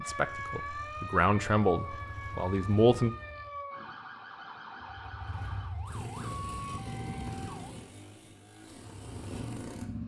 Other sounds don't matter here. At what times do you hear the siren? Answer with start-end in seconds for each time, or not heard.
0.0-7.8.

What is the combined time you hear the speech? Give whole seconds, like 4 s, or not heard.
3 s.